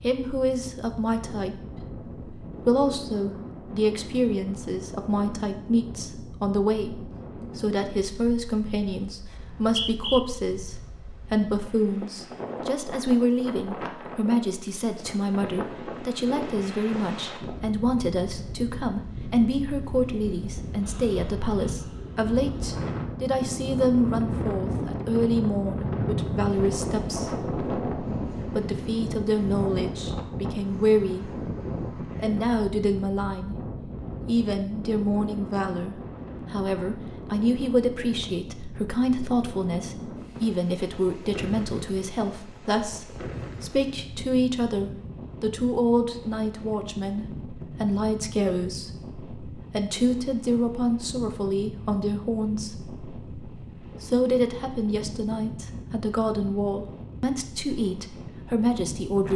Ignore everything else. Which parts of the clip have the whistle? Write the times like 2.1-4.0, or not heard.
9.3-10.2.